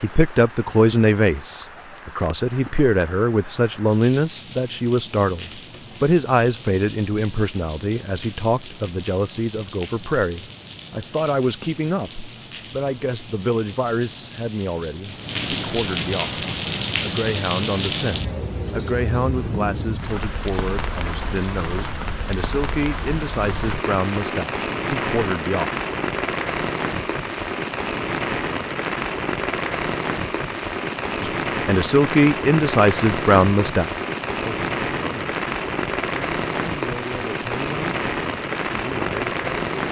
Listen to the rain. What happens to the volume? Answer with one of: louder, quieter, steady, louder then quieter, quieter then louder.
louder.